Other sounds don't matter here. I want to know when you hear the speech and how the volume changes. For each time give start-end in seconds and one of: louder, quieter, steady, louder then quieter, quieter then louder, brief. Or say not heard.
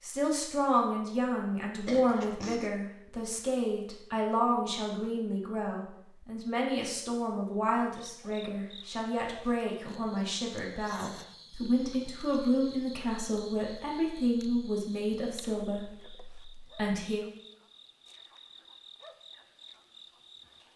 0.0-17.3 steady.